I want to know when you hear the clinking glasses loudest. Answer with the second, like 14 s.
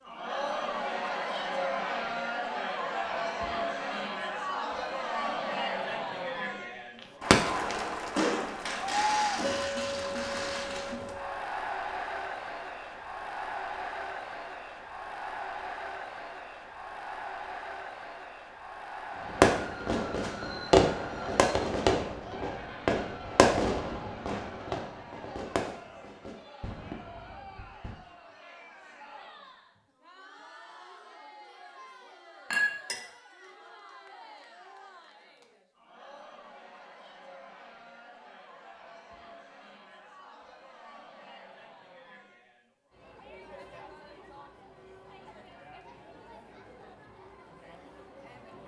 33 s.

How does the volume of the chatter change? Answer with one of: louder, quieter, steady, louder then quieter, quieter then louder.
quieter.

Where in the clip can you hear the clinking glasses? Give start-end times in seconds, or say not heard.
9.4-11.4, 32.5-33.0.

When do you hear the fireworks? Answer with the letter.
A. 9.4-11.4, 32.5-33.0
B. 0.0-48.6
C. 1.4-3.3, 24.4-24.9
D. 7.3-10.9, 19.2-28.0
D.